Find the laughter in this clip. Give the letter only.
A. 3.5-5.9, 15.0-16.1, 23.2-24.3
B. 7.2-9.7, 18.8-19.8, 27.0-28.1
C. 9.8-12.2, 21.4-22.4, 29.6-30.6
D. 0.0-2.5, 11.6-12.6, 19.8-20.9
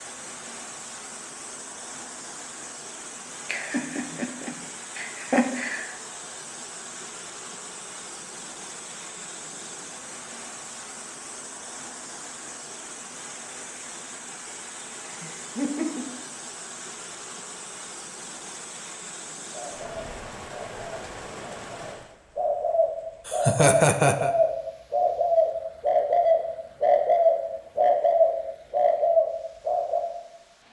A.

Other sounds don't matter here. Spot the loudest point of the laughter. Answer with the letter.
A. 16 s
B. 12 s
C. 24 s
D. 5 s
C.